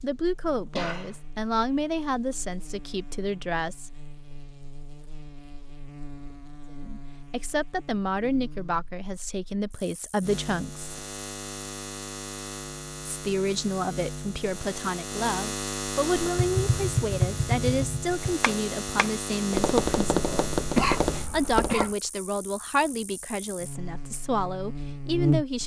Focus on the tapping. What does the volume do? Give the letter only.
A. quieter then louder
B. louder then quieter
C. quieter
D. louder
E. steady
A.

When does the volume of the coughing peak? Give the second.
21 s.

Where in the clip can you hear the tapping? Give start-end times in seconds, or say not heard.
16.1-21.9.